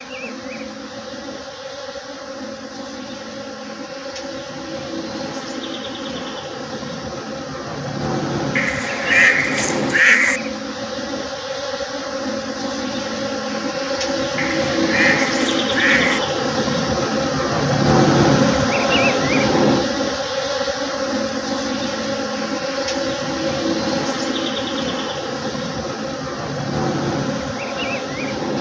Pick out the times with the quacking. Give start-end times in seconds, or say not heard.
8.6-10.4, 14.3-16.2.